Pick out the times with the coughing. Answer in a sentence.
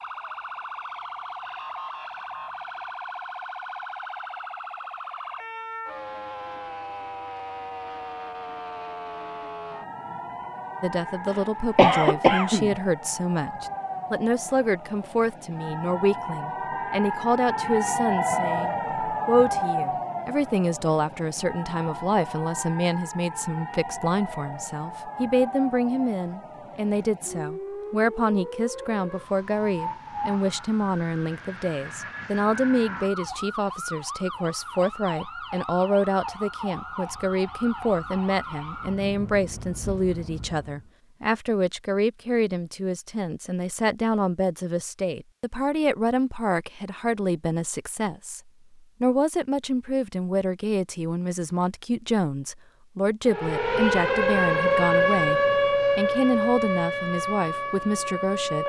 The coughing can be heard from 11.3 to 12.8 s.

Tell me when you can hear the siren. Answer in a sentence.
You can hear the siren from 0.0 to 40.9 s and from 53.2 to 58.6 s.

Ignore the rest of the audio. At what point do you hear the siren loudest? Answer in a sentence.
The loudest moment of the siren is at 55 seconds.